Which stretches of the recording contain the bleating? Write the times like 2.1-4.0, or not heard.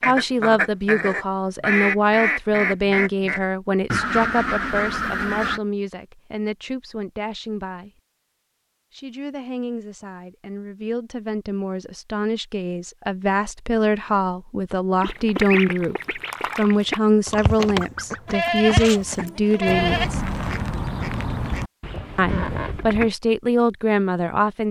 18.2-20.1.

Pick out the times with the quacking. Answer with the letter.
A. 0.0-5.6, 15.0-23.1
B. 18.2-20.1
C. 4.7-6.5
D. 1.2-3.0
A.